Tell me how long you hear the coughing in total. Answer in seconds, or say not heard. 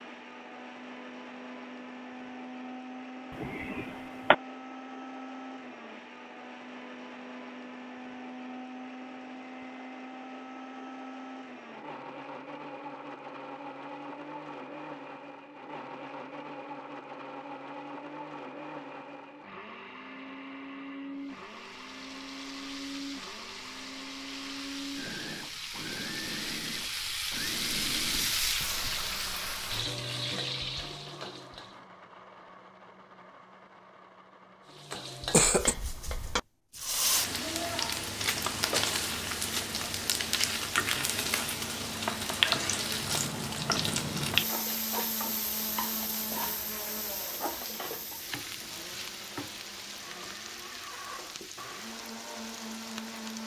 2 s.